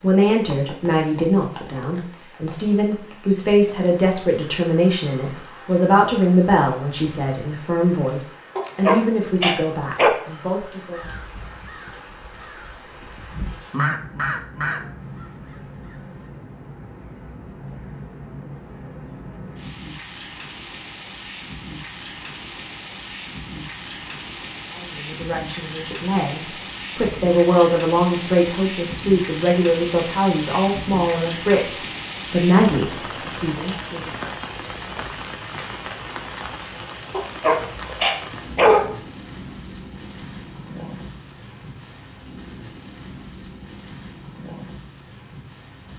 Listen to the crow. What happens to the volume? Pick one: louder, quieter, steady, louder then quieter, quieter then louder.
louder then quieter.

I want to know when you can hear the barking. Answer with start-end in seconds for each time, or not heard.
8.6-10.2, 37.1-38.9.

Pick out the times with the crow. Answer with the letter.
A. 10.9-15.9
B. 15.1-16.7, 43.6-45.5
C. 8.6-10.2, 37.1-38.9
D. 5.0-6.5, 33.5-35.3
A.